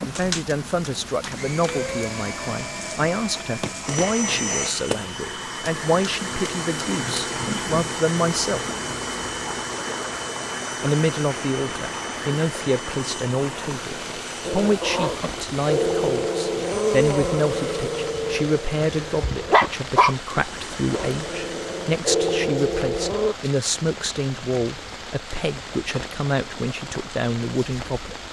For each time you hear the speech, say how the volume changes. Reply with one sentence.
You can hear the speech from 0.1 to 8.7 s, at a steady volume; and from 10.8 to 28.1 s, at a steady volume.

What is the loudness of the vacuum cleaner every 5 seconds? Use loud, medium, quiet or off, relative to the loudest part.
loud, loud, loud, medium, medium, off.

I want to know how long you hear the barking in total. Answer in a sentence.
You can hear the barking for 8 seconds altogether.